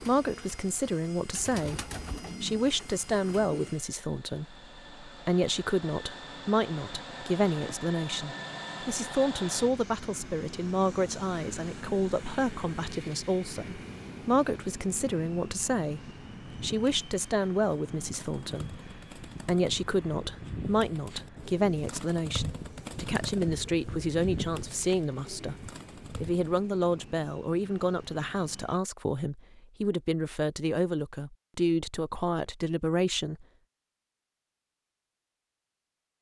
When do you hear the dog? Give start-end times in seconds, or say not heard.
not heard.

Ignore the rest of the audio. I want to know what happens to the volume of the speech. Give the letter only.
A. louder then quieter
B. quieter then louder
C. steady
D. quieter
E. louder
C.